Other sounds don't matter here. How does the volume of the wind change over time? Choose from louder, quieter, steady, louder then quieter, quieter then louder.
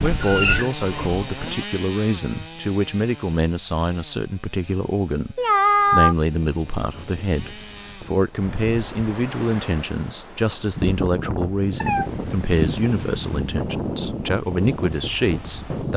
louder.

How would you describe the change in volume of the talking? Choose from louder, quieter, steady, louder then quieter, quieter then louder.
steady.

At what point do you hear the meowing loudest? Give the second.
6 s.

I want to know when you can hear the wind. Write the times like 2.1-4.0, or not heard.
6.5-15.9.